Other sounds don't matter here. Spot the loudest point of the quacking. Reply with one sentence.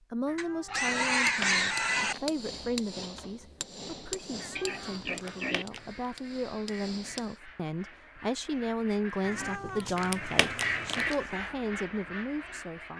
The volume of the quacking peaks at 11 seconds.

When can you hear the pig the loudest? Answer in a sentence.
The loudest moment of the pig is at 1 second.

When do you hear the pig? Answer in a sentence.
You can hear the pig from 0.3 to 2.1 s, from 4.5 to 5.7 s and from 9.3 to 11.3 s.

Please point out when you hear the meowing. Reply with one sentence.
The meowing can be heard from 0.2 to 2.2 s, from 4.4 to 5.8 s and from 9.2 to 11.2 s.